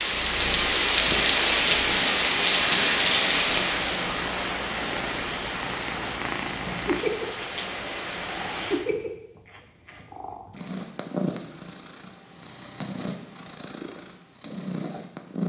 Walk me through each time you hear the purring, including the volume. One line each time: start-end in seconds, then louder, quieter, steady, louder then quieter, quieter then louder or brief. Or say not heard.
0.0-15.4 louder then quieter.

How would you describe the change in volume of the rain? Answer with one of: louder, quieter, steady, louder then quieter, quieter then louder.
quieter.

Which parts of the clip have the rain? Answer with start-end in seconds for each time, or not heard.
0.0-8.8.